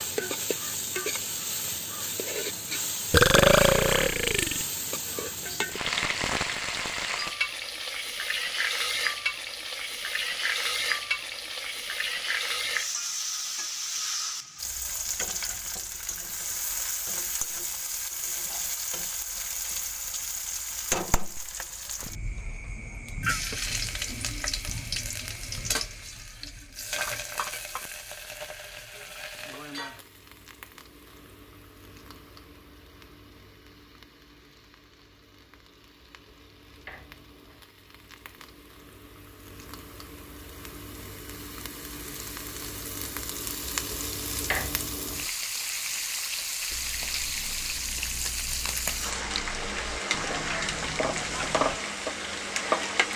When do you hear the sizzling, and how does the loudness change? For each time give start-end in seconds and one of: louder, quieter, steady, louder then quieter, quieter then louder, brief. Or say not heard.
0.0-53.1 quieter then louder.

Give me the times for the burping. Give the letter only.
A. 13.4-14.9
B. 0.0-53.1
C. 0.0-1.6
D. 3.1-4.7
D.